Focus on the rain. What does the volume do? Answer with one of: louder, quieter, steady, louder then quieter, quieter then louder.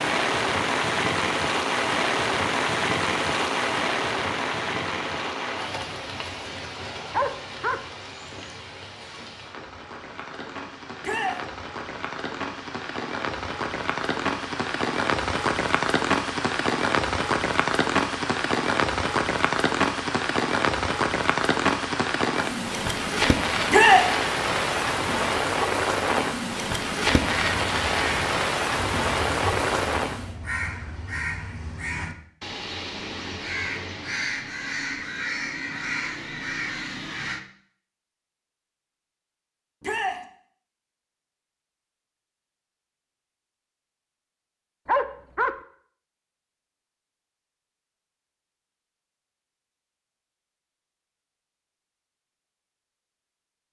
quieter then louder.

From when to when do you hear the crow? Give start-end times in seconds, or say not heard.
27.2-37.4.